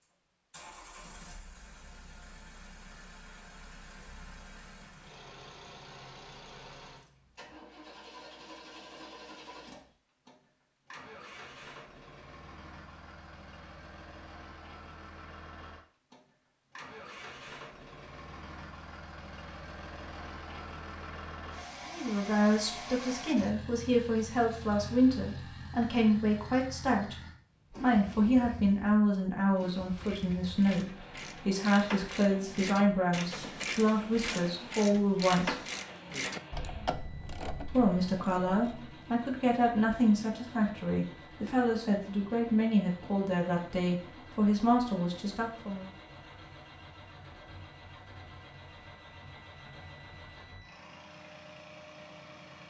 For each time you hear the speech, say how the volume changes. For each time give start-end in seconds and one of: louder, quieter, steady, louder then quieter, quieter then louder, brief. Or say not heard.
21.9-35.5 steady
37.7-45.9 steady.